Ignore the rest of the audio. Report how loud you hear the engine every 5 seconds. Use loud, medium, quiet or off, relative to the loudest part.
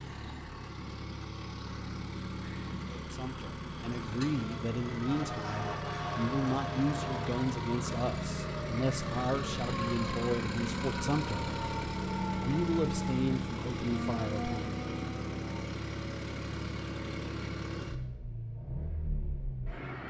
medium, loud, loud, loud.